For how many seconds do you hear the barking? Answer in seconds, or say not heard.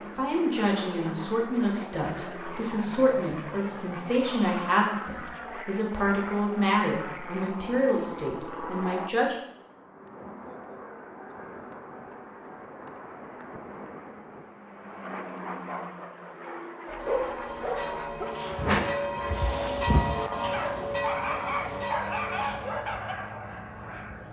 6 s.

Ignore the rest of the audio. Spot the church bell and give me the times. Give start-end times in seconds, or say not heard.
16.9-22.8.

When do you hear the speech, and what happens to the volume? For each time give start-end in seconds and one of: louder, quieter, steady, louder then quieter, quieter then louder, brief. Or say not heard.
0.0-9.3 steady.